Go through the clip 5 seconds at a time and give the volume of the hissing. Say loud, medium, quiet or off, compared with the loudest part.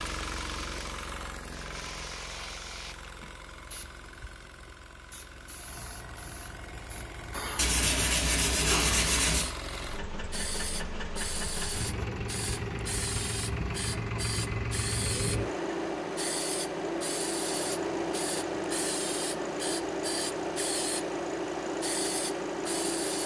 medium, medium, loud, loud, loud.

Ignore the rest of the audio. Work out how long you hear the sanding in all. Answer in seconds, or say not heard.
2 s.